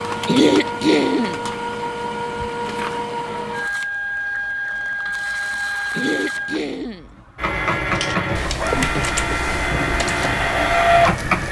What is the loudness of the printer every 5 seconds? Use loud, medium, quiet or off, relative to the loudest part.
medium, medium, loud.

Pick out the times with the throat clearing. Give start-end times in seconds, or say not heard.
0.2-1.4, 5.9-7.1.